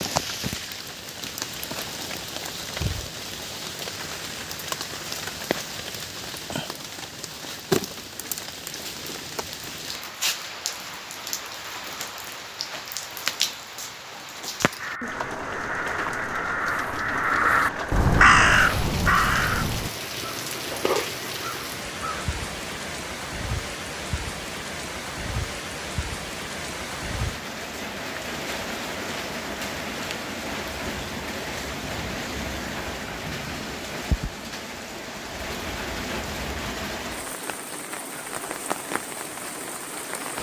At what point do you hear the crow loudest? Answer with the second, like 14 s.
18 s.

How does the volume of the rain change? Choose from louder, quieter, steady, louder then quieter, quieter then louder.
steady.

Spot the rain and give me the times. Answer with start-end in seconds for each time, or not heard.
0.0-40.3.